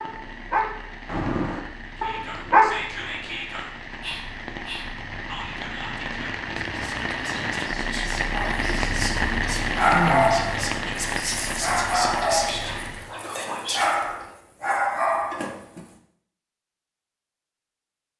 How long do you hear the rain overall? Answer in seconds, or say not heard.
13 s.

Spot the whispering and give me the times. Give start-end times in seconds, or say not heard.
1.9-14.3.